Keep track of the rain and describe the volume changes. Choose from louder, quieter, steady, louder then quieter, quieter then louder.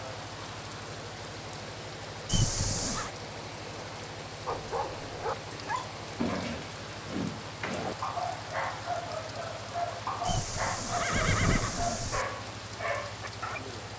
steady.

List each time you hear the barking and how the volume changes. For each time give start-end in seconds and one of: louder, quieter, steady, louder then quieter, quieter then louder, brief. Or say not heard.
4.5-13.6 steady.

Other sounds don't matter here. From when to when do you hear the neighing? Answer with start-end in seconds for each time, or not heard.
2.2-3.1, 10.2-12.2.